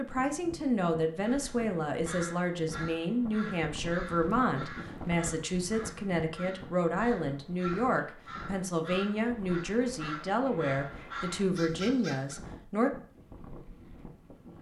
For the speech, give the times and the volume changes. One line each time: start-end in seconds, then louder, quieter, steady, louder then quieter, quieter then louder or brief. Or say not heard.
0.0-12.9 steady.